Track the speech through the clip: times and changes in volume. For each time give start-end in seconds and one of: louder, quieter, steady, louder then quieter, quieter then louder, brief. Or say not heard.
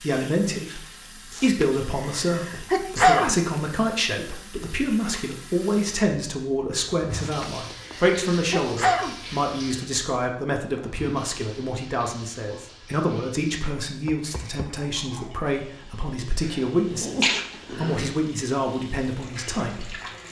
0.0-19.9 steady.